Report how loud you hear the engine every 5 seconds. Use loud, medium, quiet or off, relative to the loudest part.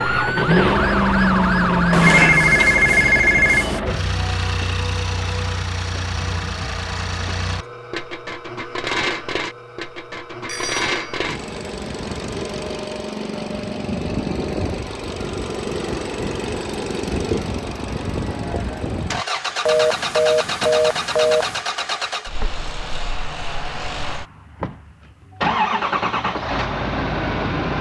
loud, medium, medium, medium, medium, loud.